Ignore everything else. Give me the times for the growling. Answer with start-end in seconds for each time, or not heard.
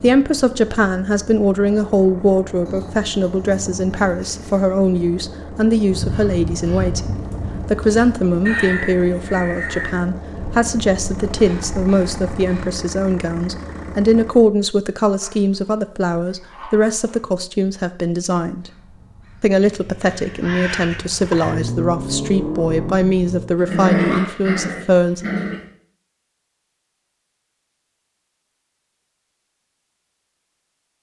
2.6-4.7, 15.2-17.2, 23.6-25.6.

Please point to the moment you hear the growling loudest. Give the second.
24 s.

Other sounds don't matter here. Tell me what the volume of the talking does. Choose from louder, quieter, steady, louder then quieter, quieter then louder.
steady.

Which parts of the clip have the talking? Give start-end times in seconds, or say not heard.
0.0-18.7, 19.4-25.2.